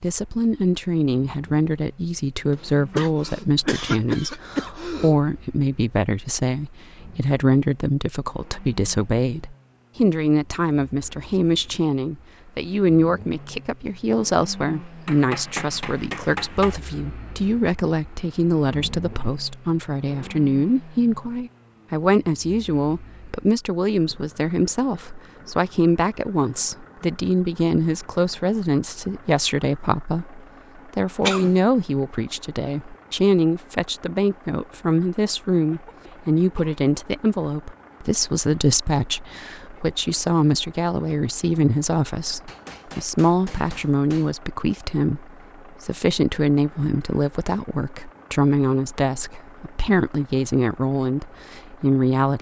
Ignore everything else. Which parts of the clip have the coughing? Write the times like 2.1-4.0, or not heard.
2.9-5.2, 31.2-31.6, 35.7-36.8.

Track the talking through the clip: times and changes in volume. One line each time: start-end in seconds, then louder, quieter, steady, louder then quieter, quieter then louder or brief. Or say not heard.
0.0-52.3 steady.